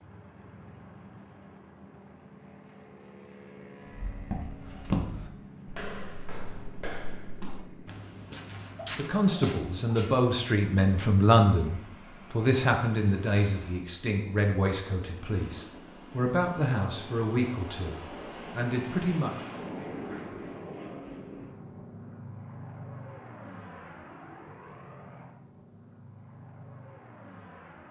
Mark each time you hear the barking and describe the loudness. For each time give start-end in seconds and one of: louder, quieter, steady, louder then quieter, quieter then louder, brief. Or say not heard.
not heard.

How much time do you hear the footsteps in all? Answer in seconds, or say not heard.
6 s.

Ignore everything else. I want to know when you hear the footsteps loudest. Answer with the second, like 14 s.
5 s.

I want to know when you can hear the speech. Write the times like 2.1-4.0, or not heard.
8.9-19.6.